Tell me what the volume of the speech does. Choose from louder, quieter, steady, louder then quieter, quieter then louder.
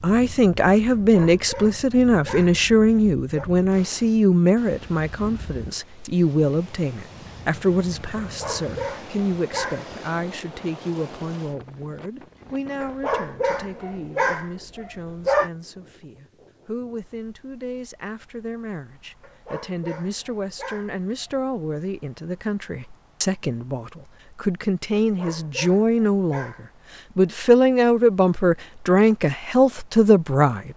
quieter then louder.